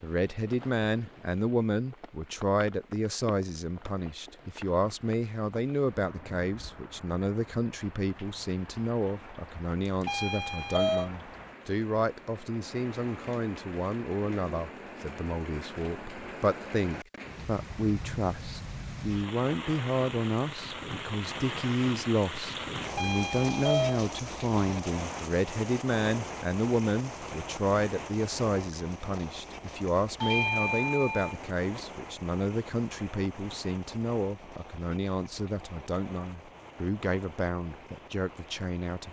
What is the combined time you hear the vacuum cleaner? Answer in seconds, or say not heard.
not heard.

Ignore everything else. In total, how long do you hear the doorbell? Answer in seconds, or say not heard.
3 s.